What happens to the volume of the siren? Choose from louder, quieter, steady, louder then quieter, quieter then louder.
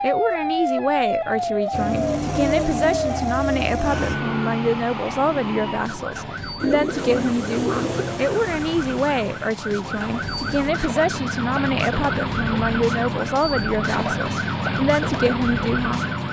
quieter then louder.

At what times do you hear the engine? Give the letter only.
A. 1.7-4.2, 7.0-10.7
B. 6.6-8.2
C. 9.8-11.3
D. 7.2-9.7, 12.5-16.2
A.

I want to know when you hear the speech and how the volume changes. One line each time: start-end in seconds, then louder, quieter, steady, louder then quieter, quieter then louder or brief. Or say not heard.
0.0-16.1 steady.